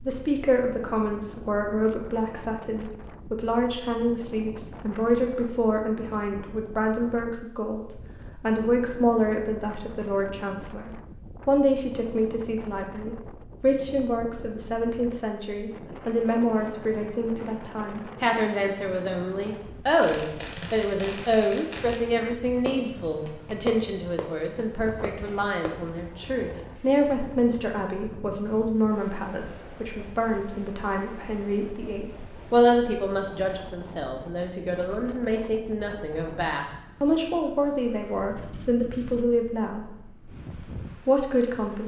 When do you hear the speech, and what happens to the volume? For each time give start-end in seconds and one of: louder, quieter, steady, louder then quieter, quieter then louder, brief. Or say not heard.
0.0-40.0 steady
41.0-41.8 brief.